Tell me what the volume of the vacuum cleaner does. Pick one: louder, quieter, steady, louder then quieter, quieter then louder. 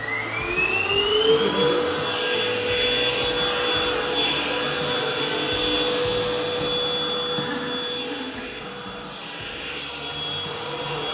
quieter.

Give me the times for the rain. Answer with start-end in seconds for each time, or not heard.
not heard.